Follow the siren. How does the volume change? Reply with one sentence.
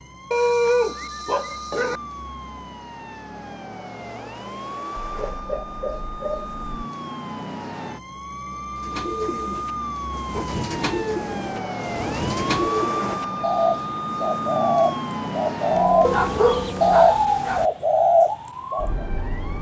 The volume of the siren goes up.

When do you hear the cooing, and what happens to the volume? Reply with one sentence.
The cooing can be heard from 8.8 to 19.1 s, getting louder.